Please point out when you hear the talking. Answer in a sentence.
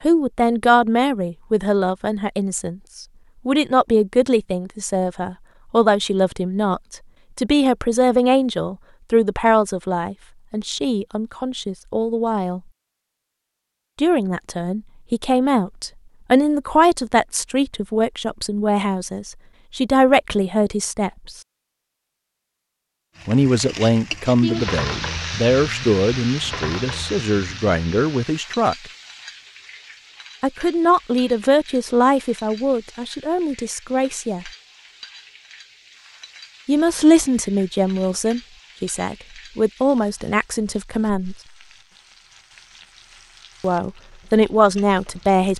You can hear the talking from 0.0 to 12.6 s, from 13.9 to 21.4 s, from 23.2 to 28.8 s, from 30.4 to 34.5 s, from 36.6 to 41.4 s and from 43.6 to 45.5 s.